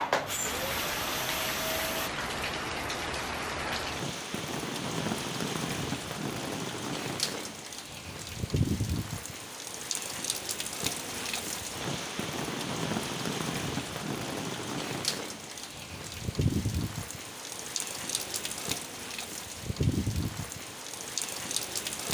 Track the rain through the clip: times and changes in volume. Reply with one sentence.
You can hear the rain from 0.1 to 22.0 s, at a steady volume.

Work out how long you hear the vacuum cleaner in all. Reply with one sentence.
The vacuum cleaner can be heard for 2 seconds in total.